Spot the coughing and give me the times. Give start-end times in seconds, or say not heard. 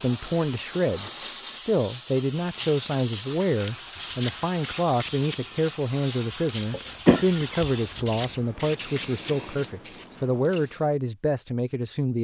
6.7-8.1.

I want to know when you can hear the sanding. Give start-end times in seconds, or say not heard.
2.5-10.6.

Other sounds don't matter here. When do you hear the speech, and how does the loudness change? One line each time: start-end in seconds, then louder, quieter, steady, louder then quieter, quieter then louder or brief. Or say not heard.
0.0-12.2 steady.